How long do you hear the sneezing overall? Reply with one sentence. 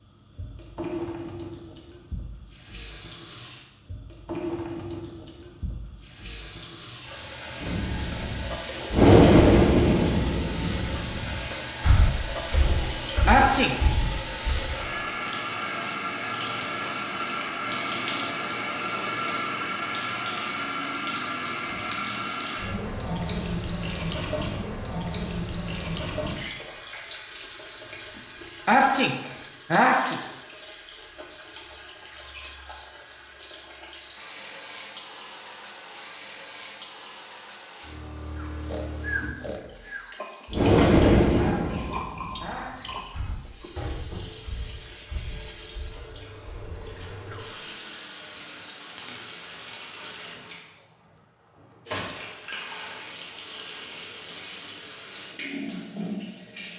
The sneezing can be heard for 4 seconds in total.